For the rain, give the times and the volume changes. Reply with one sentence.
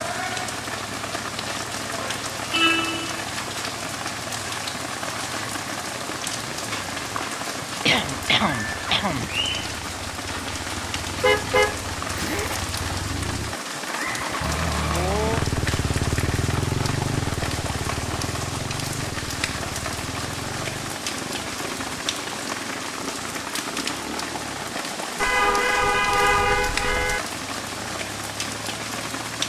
The rain can be heard from 0.0 to 29.4 s, at a steady volume.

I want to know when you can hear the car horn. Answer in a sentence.
The car horn can be heard from 2.5 to 3.3 s, from 11.2 to 12.6 s and from 25.2 to 27.2 s.